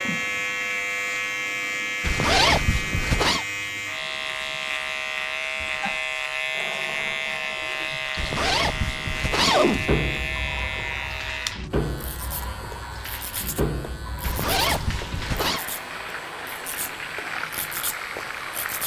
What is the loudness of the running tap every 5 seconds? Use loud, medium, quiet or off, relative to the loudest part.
quiet, loud, loud, loud.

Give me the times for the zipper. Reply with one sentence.
The zipper can be heard from 2.0 to 3.5 s, from 8.2 to 9.8 s and from 14.2 to 15.7 s.